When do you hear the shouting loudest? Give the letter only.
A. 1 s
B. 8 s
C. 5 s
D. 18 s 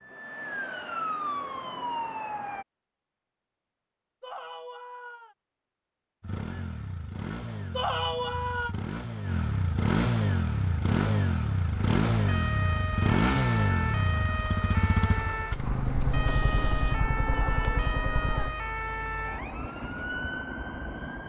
B.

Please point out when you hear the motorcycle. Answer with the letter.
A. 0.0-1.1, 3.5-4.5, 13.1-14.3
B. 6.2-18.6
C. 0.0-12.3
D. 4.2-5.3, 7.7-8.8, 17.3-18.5
B.